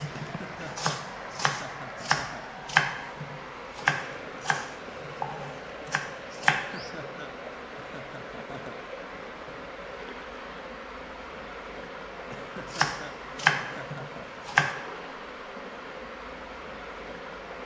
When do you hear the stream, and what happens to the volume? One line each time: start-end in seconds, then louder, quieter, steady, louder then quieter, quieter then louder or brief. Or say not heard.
0.0-17.5 steady.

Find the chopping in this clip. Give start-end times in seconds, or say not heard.
0.0-6.9, 12.7-14.8.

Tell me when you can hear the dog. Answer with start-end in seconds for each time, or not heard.
not heard.